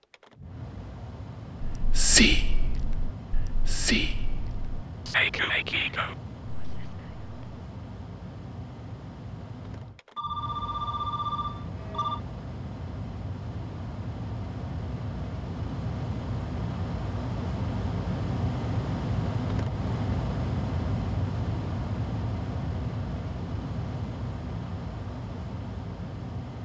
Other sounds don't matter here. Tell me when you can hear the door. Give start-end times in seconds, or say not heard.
not heard.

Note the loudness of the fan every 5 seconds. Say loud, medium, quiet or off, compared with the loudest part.
medium, medium, medium, loud, loud, medium.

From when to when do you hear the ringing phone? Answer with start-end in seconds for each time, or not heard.
10.2-12.2.